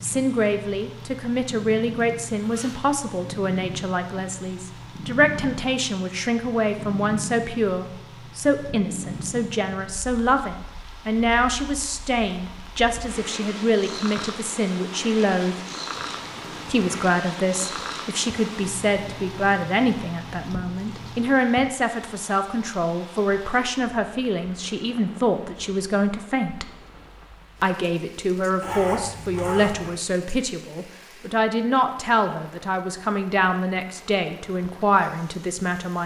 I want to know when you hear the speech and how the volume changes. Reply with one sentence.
The speech can be heard from 0.0 to 15.6 s, at a steady volume; from 16.6 to 26.7 s, at a steady volume; and from 27.6 to 36.0 s, at a steady volume.